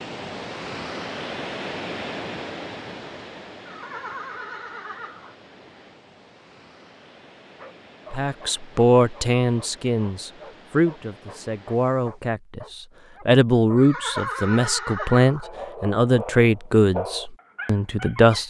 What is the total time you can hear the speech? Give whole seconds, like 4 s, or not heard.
10 s.